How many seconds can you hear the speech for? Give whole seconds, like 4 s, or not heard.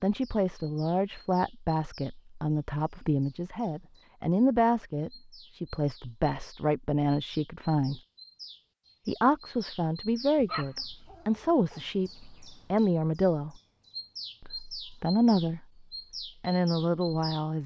15 s.